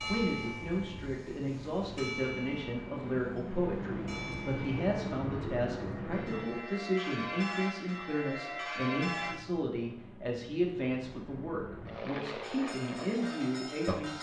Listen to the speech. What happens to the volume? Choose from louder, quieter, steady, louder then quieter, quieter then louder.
steady.